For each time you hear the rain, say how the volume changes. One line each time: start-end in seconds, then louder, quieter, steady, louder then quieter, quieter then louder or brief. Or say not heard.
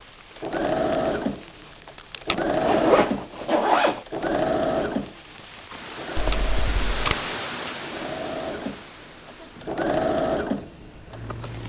0.0-11.6 louder then quieter.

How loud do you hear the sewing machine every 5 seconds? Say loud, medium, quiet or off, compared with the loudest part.
loud, medium, loud.